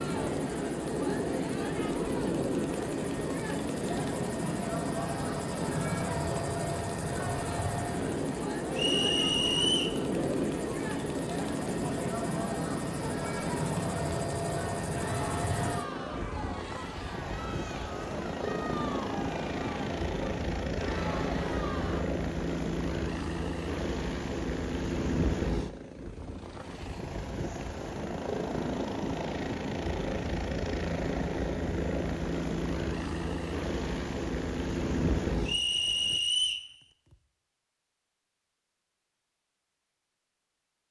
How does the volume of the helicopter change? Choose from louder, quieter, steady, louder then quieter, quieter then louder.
steady.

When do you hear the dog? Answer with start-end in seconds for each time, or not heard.
not heard.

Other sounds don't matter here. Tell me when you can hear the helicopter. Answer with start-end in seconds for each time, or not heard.
0.0-36.2.